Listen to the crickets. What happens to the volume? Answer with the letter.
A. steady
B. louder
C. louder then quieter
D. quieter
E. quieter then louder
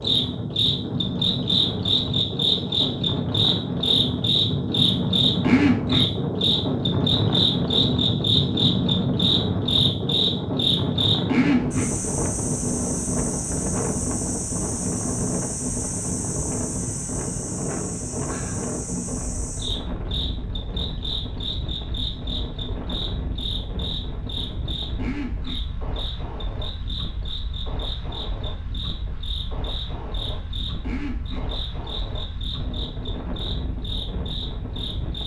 D.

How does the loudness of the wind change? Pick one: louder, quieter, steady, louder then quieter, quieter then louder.
quieter.